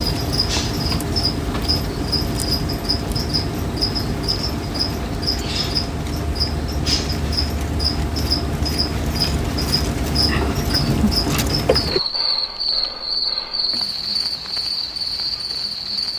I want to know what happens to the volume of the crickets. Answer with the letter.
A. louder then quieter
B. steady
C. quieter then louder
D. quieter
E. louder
B.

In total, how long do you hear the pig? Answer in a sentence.
You can hear the pig for 2 seconds altogether.